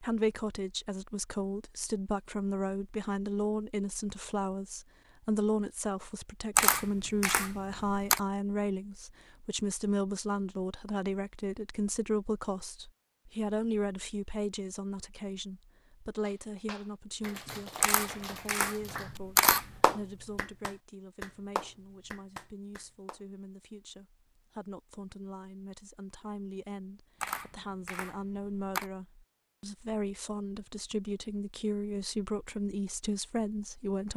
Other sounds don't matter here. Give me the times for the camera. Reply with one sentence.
You can hear the camera from 6.5 to 8.2 s, from 17.8 to 19.6 s and from 27.2 to 28.9 s.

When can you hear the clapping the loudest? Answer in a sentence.
The volume of the clapping peaks at 20 seconds.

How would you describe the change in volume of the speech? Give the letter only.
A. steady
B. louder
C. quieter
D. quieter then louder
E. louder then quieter
D.